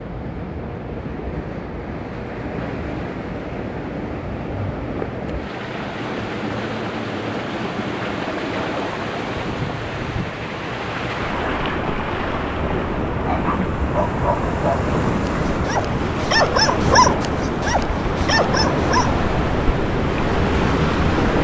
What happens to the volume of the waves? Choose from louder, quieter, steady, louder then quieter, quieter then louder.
louder.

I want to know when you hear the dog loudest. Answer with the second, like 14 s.
17 s.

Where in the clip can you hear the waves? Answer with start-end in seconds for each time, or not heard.
0.0-21.3.